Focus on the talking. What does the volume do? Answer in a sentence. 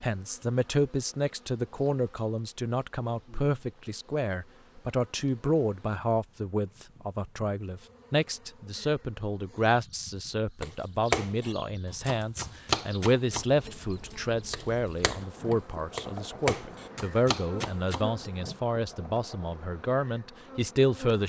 The loudness of the talking stays about the same.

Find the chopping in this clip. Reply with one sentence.
The chopping can be heard from 10.6 to 18.3 s.